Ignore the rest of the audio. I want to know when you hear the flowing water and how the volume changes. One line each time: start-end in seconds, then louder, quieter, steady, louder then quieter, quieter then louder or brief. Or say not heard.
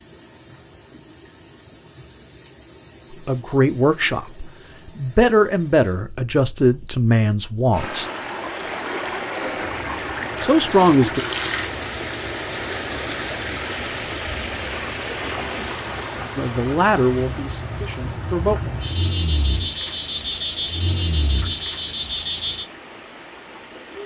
7.7-24.0 quieter.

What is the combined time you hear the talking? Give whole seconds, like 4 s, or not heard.
8 s.